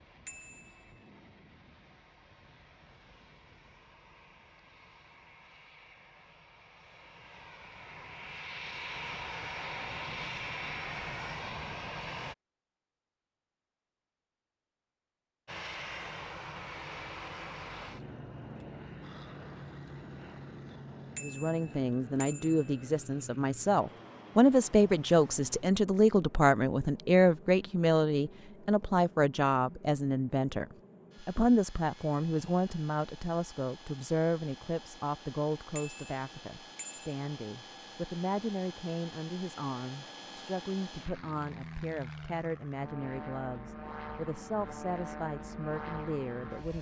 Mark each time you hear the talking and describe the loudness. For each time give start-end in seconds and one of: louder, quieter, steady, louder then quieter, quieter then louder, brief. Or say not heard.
21.2-46.7 quieter.